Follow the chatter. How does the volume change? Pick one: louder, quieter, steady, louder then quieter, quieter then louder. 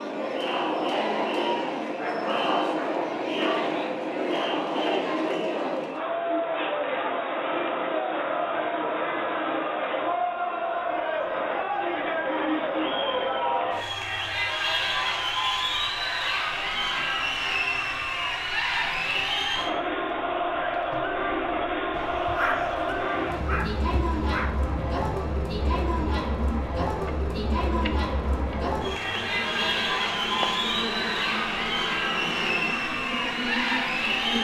steady.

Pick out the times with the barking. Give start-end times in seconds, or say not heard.
1.9-3.7, 21.9-24.5.